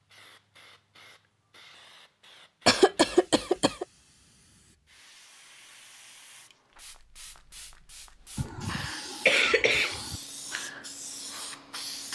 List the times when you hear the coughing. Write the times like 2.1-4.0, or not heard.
2.6-3.9, 8.3-10.2.